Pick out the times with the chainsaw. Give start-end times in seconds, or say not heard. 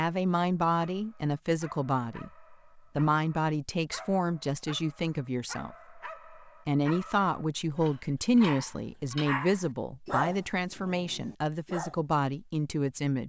not heard.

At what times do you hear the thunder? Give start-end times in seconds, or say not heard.
not heard.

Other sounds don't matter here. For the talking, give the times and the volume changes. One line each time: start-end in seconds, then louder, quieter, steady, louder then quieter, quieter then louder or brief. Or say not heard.
0.0-13.2 steady.